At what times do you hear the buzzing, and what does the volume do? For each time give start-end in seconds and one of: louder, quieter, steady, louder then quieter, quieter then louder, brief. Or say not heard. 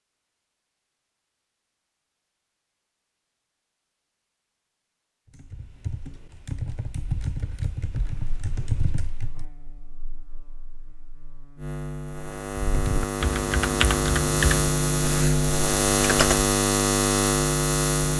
8.0-18.1 louder.